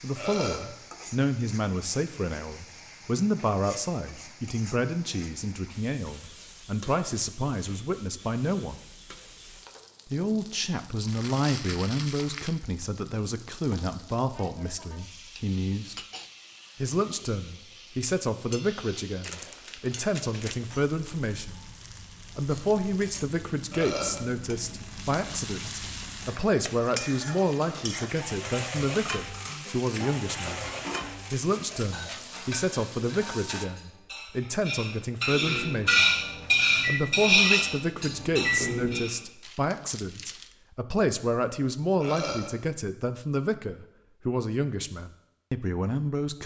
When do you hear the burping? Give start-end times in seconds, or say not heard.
0.1-0.7, 23.7-24.2, 42.0-42.5.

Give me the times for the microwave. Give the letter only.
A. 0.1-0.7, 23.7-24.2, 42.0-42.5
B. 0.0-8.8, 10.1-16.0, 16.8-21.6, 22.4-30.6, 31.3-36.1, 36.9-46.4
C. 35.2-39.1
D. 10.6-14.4
C.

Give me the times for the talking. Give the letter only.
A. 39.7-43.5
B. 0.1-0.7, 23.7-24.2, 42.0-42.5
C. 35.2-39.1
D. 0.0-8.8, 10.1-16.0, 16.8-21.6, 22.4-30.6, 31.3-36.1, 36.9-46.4
D.